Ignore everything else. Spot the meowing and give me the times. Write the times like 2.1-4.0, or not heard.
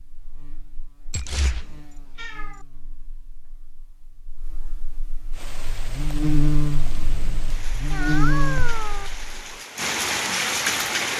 1.1-2.5, 7.9-9.1.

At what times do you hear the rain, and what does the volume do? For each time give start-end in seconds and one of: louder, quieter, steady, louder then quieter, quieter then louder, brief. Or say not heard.
5.3-11.1 louder.